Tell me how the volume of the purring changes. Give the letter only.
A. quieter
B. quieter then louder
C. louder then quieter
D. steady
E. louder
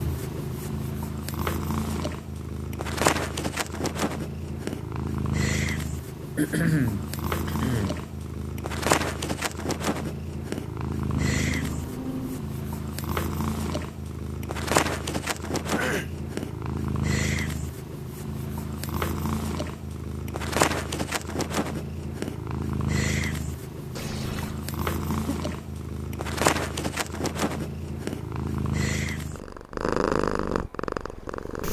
D.